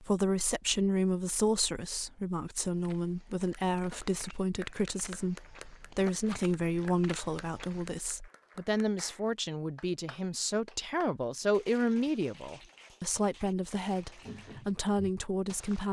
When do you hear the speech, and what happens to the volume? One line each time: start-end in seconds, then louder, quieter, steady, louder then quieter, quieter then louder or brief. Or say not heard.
0.0-15.8 steady.